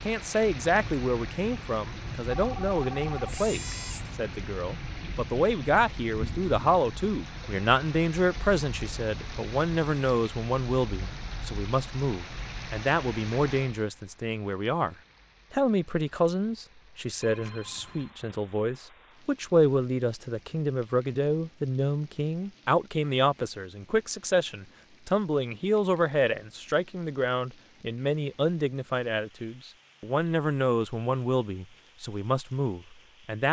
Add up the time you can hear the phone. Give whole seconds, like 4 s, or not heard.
3 s.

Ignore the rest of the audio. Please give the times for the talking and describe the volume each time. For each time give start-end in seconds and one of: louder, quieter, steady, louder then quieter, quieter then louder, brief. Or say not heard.
0.0-33.4 steady.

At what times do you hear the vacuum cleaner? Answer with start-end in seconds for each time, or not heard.
not heard.